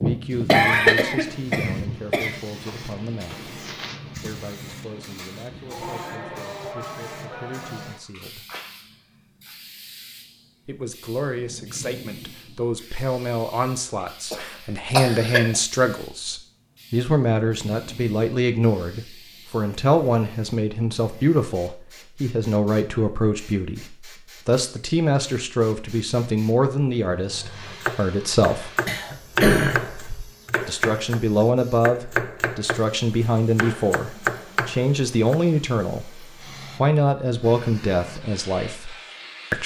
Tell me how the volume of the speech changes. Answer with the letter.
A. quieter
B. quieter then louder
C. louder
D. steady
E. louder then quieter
C.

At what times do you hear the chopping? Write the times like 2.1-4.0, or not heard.
27.6-35.4.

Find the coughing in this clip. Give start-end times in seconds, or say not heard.
0.5-2.4, 14.3-15.6, 28.9-30.2.